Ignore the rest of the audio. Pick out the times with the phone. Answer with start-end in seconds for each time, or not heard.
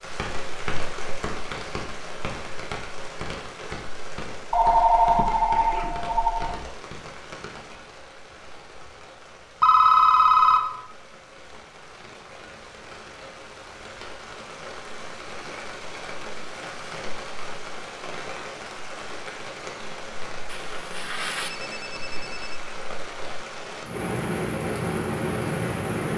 4.5-6.5, 9.6-10.7, 20.4-22.6.